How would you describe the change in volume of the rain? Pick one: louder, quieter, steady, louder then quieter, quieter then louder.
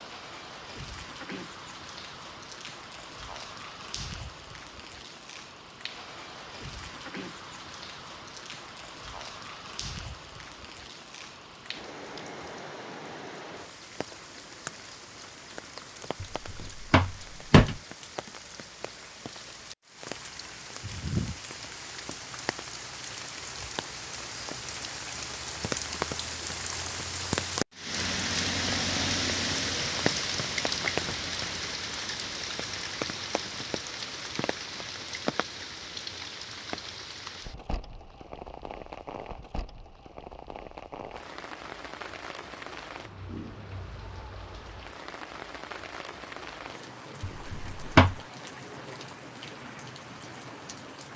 louder then quieter.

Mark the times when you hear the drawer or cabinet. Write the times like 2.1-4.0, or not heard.
16.2-17.8, 47.4-48.1.